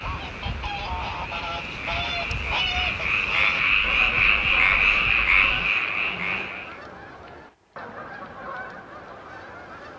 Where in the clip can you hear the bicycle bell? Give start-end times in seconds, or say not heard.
not heard.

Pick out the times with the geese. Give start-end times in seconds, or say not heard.
0.0-9.9.